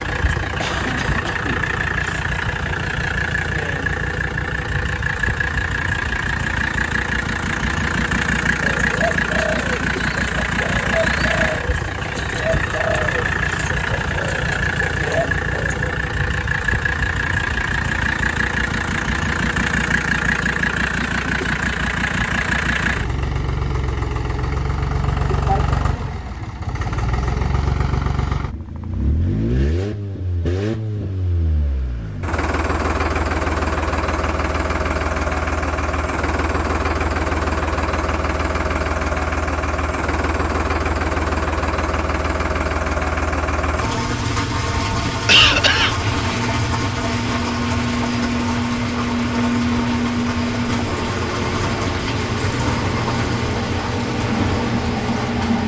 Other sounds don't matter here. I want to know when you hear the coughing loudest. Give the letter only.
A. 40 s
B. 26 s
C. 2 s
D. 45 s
D.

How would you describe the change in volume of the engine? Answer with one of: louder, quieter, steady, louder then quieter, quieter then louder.
steady.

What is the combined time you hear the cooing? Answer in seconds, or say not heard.
7 s.